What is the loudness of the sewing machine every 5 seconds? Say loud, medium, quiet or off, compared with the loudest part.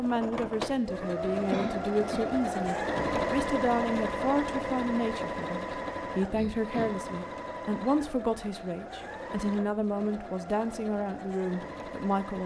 loud, medium, medium.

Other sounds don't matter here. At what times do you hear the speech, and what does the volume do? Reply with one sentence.
The speech can be heard from 0.0 to 12.4 s, at a steady volume.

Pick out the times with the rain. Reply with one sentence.
You can't hear the rain here.